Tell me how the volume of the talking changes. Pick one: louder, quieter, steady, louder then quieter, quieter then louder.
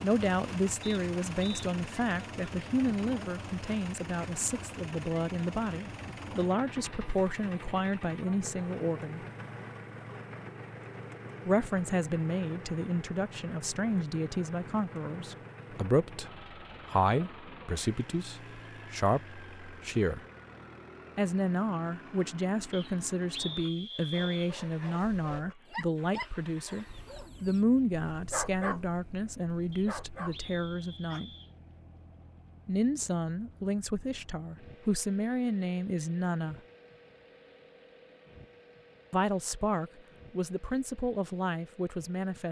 steady.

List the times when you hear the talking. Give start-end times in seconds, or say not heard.
0.0-9.2, 11.4-20.2, 21.1-31.3, 32.6-36.5, 39.1-42.4.